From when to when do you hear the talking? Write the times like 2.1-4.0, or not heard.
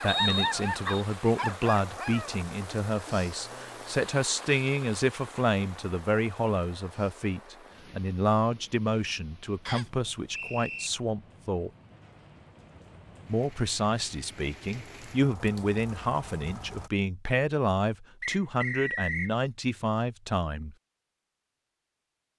0.0-11.7, 13.2-20.8.